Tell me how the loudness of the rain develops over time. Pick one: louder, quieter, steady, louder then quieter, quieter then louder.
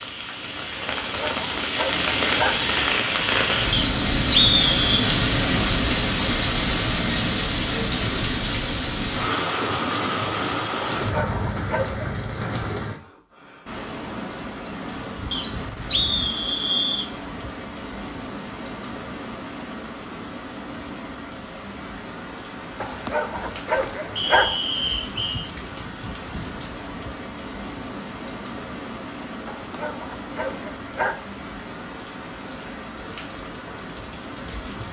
quieter.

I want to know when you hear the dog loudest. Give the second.
24 s.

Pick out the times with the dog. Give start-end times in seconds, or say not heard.
1.1-2.6, 10.8-12.2, 22.8-24.6, 29.4-31.1.